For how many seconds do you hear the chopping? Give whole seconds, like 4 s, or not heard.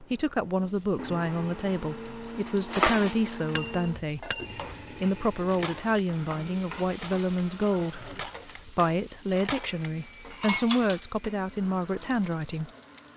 not heard.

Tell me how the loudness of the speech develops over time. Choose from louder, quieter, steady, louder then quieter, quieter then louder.
steady.